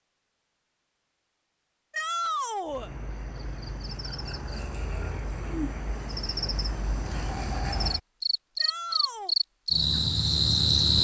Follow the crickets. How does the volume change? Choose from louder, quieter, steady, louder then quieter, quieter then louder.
louder.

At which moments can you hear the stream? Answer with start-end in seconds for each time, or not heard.
not heard.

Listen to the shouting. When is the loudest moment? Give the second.
2 s.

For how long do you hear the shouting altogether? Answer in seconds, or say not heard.
2 s.